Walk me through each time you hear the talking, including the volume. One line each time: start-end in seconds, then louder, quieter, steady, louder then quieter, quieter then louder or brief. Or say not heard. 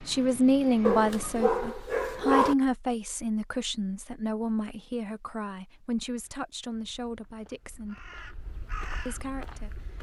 0.1-8.1 quieter
9.1-9.9 brief.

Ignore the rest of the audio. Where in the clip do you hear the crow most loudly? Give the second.
9 s.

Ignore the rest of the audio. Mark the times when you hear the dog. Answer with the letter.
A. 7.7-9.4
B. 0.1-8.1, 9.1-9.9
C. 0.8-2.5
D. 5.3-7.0
C.